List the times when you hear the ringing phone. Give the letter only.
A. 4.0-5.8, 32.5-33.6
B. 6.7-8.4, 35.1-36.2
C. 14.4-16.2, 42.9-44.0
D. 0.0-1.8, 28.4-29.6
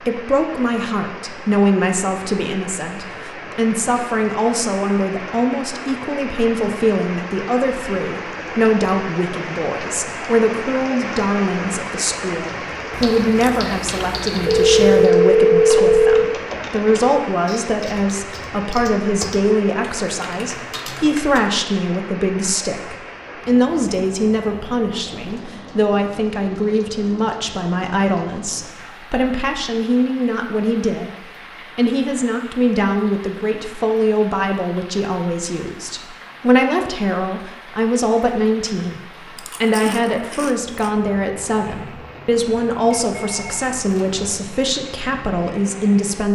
C.